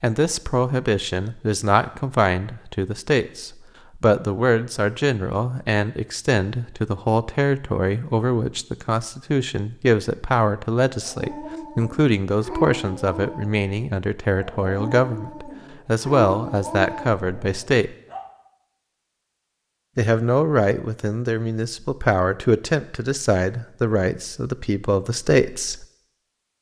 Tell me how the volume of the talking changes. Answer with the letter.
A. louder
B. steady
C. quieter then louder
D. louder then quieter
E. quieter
B.